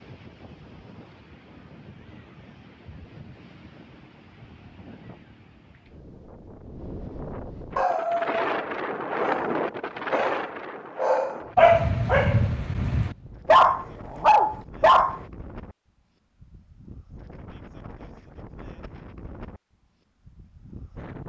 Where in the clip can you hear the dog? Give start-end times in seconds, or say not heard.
7.8-15.2.